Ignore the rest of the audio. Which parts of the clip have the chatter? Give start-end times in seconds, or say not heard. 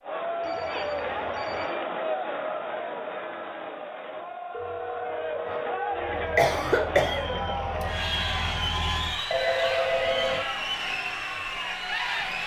0.0-12.4.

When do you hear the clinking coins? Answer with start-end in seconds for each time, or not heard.
not heard.